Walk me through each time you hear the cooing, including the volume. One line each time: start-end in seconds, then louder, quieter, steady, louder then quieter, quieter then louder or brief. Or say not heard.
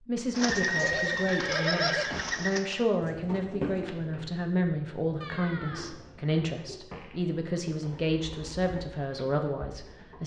0.3-10.2 quieter.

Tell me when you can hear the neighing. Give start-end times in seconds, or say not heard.
0.5-2.5, 5.2-6.0.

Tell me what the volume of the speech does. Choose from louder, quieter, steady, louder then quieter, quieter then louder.
steady.